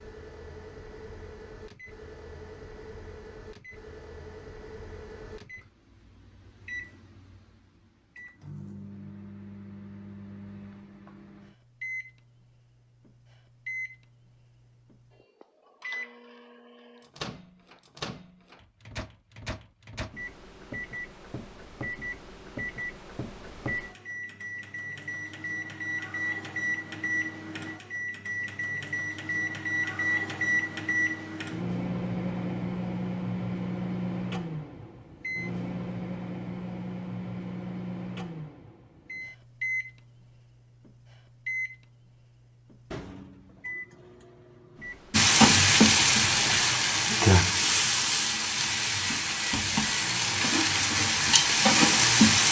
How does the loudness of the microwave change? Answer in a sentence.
The volume of the microwave goes up, then down.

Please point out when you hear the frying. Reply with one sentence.
You can hear the frying from 45.1 to 52.4 s.